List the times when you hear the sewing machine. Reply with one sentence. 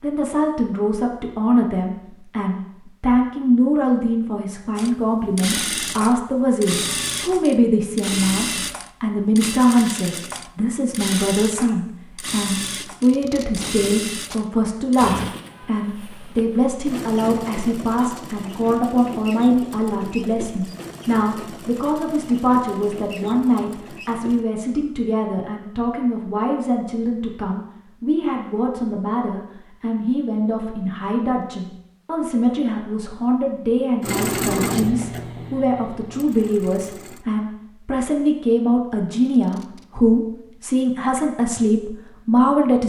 The sewing machine can be heard from 4.8 to 24.4 s and from 34.0 to 37.2 s.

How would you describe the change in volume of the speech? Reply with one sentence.
The loudness of the speech stays about the same.